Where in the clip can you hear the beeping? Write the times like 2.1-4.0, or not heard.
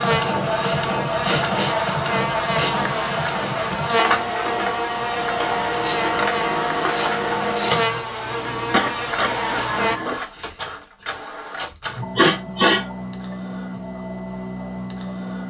not heard.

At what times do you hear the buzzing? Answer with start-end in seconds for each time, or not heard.
0.0-10.0.